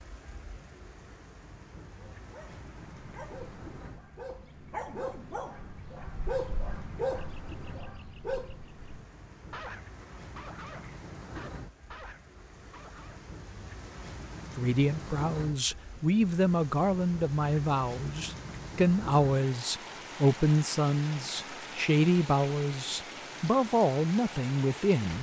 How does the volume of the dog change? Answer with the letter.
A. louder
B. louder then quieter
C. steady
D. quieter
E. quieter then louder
B.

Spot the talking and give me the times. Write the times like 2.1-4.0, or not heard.
14.6-25.1.